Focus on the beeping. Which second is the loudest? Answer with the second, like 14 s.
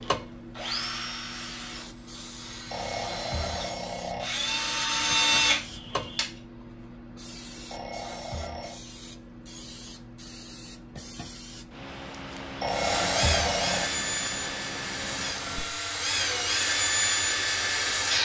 13 s.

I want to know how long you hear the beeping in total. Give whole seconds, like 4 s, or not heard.
4 s.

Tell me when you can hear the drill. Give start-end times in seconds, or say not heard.
0.0-6.2, 12.7-18.1.